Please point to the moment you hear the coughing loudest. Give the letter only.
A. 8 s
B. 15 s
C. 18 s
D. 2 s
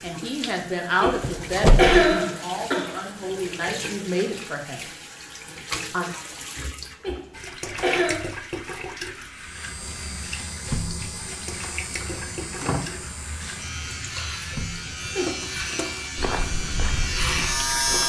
D.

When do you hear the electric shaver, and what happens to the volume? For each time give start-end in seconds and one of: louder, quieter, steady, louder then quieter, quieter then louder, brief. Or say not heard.
9.3-18.0 louder.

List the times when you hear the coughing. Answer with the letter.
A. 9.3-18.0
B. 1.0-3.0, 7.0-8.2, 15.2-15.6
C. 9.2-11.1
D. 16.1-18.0
B.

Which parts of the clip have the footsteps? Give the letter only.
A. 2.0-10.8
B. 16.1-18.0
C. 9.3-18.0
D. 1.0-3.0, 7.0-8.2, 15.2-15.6
B.